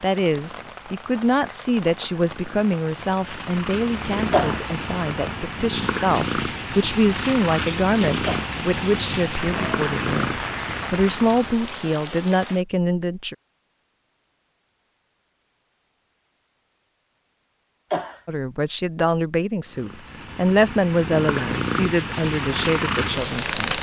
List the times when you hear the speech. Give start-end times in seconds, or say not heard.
0.0-13.3, 18.2-23.7.